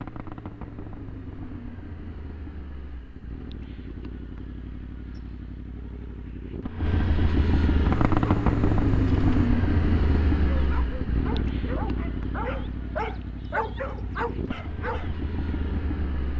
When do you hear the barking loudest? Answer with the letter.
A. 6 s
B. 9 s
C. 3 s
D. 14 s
D.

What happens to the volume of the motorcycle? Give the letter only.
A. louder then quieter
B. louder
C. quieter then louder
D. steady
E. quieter
A.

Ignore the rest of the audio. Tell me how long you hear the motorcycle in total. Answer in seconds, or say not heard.
16 s.